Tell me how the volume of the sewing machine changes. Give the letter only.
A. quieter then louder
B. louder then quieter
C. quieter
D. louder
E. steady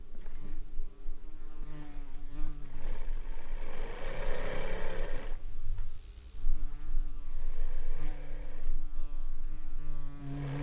B.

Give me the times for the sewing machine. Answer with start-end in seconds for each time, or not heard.
0.0-10.5.